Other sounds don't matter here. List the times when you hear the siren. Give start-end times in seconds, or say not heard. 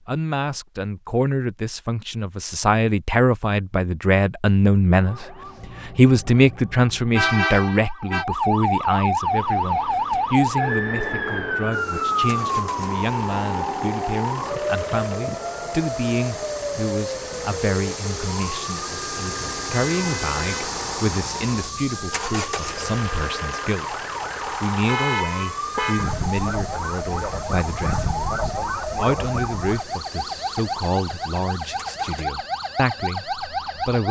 5.0-34.0.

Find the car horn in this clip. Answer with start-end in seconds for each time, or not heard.
7.1-8.2, 19.1-20.7, 24.9-26.1.